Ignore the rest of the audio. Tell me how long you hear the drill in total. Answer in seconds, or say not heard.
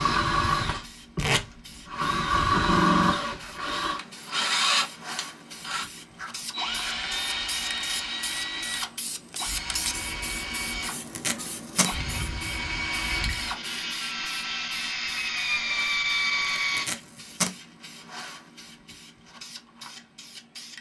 17 s.